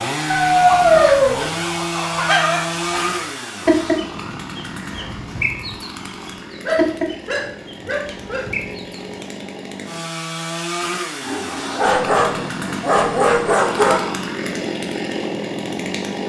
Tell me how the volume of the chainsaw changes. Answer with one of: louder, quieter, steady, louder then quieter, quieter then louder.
quieter then louder.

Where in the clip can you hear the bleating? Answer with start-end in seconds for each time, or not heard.
not heard.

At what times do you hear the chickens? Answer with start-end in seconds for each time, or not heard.
0.7-9.1.